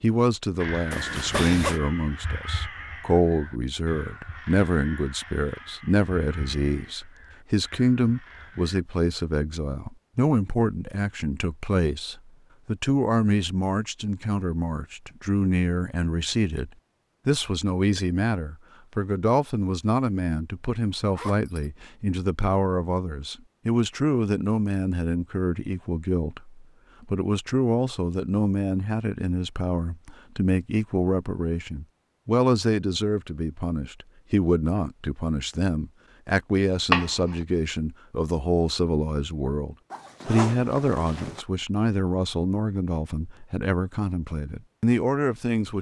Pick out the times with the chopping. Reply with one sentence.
You can hear the chopping from 36.9 to 37.4 s.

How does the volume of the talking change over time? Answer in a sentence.
The loudness of the talking stays about the same.